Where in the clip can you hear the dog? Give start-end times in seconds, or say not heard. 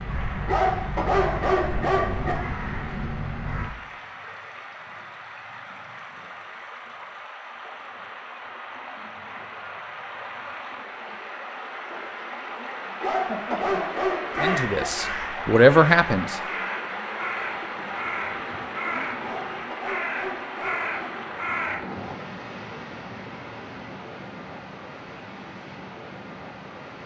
0.5-2.4, 13.0-14.8, 19.2-20.9.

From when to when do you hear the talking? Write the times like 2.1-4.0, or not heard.
14.4-16.4.